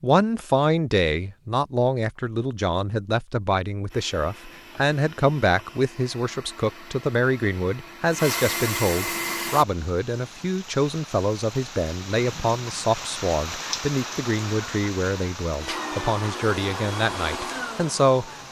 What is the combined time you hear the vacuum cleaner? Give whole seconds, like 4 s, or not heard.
10 s.